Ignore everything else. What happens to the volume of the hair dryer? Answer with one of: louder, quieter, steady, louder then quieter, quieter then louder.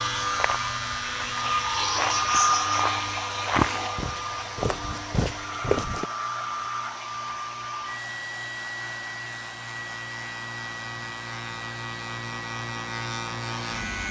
quieter.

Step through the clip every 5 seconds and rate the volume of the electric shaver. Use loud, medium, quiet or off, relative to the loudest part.
loud, medium, loud.